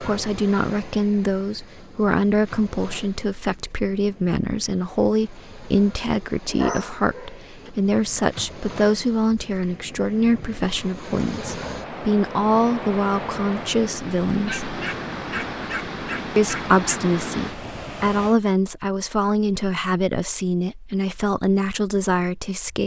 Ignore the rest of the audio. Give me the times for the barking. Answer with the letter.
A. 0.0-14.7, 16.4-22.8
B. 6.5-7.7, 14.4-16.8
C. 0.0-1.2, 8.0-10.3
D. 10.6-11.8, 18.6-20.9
B.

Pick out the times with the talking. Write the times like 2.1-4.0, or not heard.
0.0-14.7, 16.4-22.8.